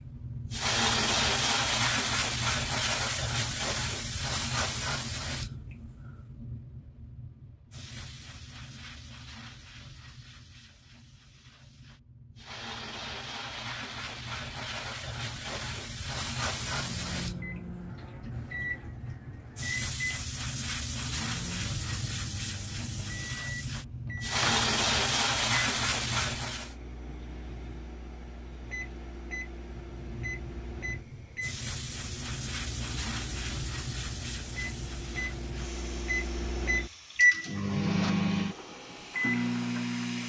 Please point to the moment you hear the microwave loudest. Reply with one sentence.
The loudest moment of the microwave is at 38 seconds.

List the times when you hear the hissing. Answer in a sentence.
You can hear the hissing from 0.0 to 26.8 s and from 29.7 to 40.2 s.